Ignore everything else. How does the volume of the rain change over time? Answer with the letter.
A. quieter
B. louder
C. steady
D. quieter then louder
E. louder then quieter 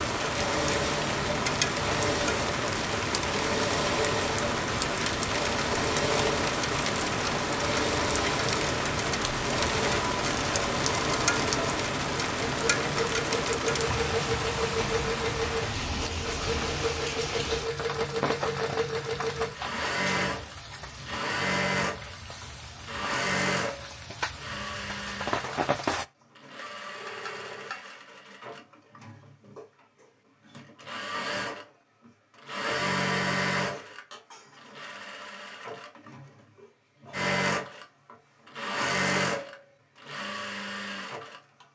A.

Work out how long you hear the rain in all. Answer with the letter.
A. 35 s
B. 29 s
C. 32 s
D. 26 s
D.